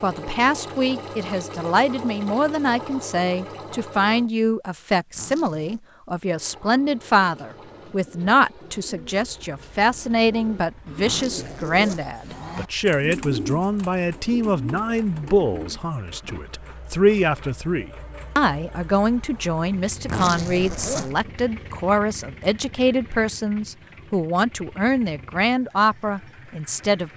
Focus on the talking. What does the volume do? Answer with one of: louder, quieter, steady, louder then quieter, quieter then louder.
steady.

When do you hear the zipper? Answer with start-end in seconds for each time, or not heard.
5.1-5.8, 11.0-12.2, 20.1-21.2.